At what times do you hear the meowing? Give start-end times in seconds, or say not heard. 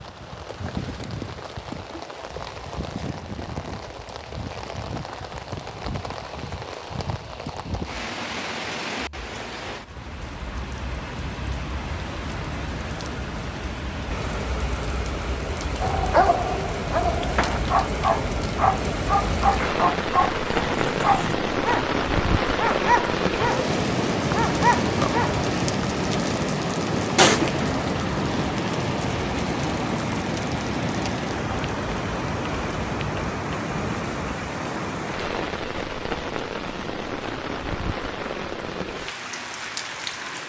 27.1-27.9.